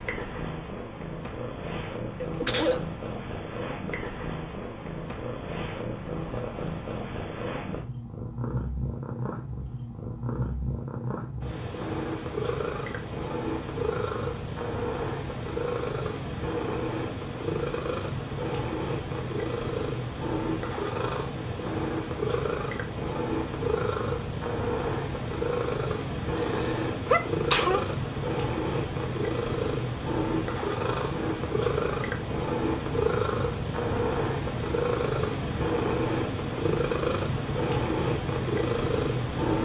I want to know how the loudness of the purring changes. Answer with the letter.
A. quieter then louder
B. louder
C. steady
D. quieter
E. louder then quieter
B.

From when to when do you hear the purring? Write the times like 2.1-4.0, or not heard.
0.0-39.6.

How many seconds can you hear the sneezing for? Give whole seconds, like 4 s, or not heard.
2 s.